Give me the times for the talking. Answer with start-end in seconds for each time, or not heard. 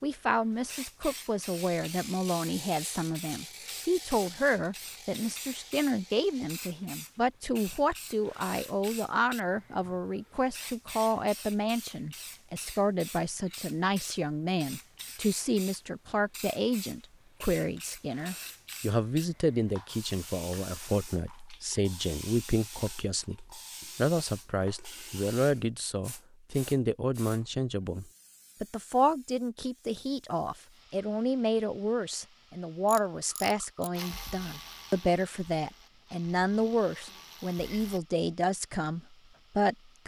0.0-40.0.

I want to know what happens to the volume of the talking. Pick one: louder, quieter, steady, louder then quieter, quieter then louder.
steady.